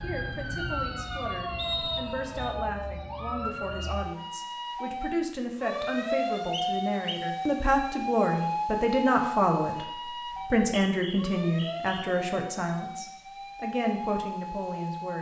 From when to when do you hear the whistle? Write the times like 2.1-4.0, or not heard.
1.6-2.5, 6.5-7.2, 10.3-12.1.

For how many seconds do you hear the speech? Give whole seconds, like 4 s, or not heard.
15 s.